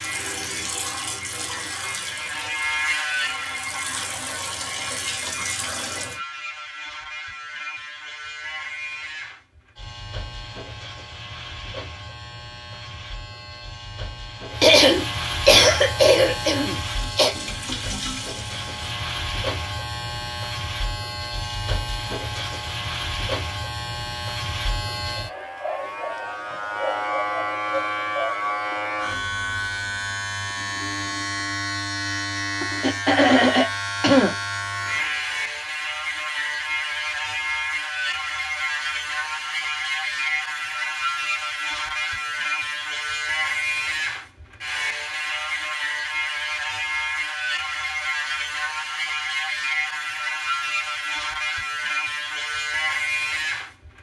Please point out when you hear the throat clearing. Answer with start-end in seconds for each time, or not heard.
14.6-17.4, 32.8-34.4.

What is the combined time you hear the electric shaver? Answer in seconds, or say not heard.
54 s.